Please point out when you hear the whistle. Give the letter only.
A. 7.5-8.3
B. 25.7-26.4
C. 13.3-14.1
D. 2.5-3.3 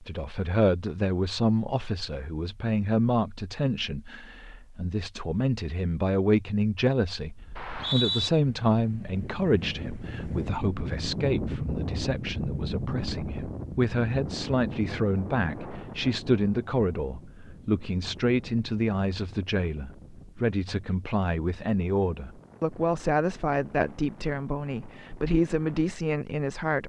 A.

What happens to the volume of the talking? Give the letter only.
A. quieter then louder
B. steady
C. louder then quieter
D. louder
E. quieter
B.